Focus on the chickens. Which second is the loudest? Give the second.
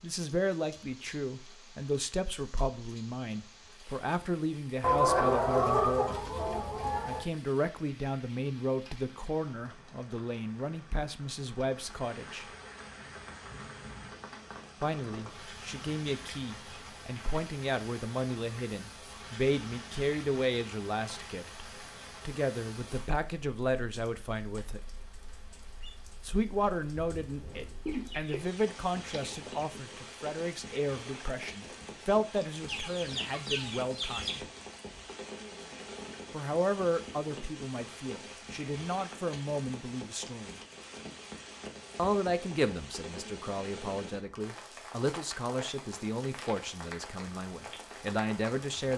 5 s.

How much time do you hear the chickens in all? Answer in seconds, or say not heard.
6 s.